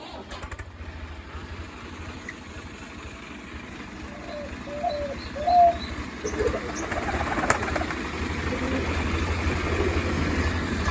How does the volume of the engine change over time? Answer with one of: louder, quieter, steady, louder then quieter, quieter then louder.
louder.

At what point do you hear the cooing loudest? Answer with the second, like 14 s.
6 s.